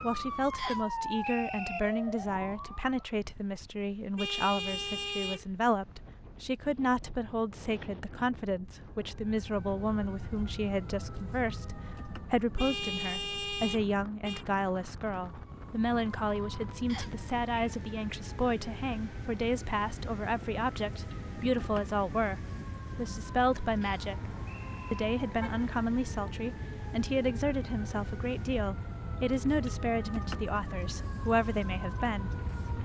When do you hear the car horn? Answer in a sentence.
You can hear the car horn from 4.2 to 5.5 s, from 12.6 to 14.4 s and from 24.1 to 25.7 s.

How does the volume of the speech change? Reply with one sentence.
The loudness of the speech stays about the same.